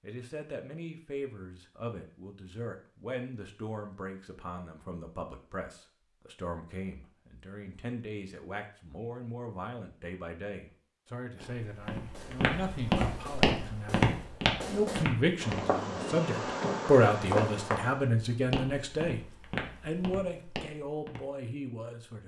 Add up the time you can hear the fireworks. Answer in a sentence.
The fireworks can be heard for 6 seconds in total.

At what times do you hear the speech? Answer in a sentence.
The speech can be heard from 0.0 to 22.2 s.